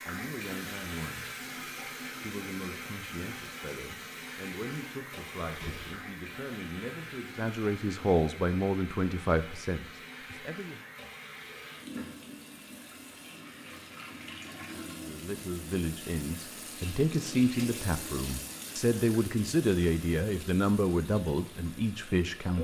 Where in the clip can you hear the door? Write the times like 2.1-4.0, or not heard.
5.5-6.0.